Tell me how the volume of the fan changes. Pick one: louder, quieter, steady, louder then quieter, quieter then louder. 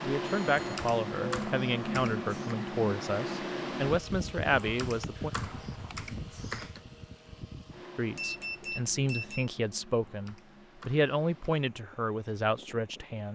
quieter.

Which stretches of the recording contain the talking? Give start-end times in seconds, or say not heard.
0.0-5.3, 8.0-13.3.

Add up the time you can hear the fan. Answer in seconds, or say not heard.
13 s.